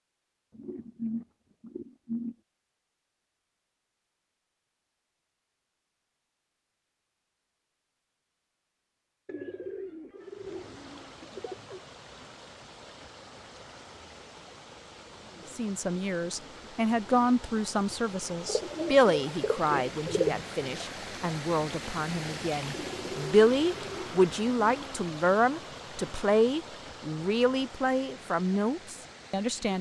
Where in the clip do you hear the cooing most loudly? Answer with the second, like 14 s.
20 s.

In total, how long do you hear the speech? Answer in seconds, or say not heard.
14 s.